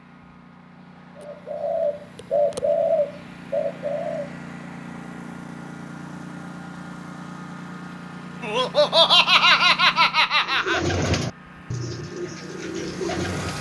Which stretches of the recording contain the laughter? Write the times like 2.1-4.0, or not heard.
8.4-10.8.